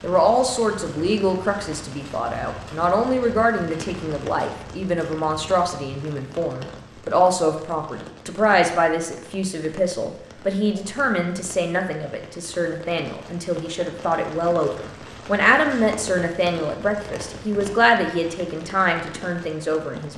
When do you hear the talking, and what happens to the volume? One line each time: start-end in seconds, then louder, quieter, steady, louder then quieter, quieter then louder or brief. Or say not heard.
0.0-20.1 steady.